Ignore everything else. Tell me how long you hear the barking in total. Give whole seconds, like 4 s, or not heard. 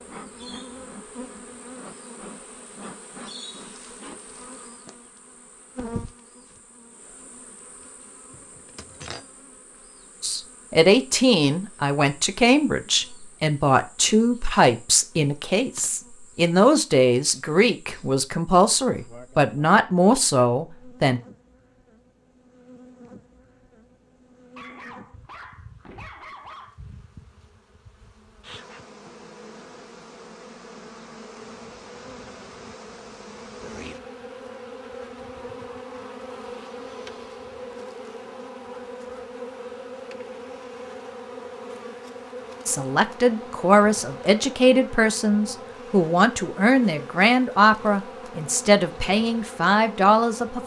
2 s.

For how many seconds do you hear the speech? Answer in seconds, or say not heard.
19 s.